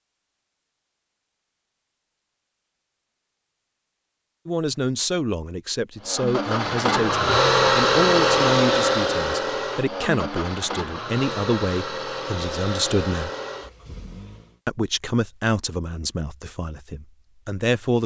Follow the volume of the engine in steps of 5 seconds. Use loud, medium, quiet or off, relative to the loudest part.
off, loud, medium, off.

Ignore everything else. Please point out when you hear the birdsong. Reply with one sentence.
You can't hear the birdsong here.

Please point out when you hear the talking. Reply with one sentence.
You can hear the talking from 4.5 to 13.3 s and from 14.7 to 18.0 s.